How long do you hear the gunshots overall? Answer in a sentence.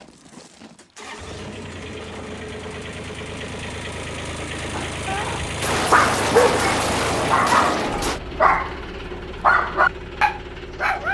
The gunshots can be heard for 3 seconds in total.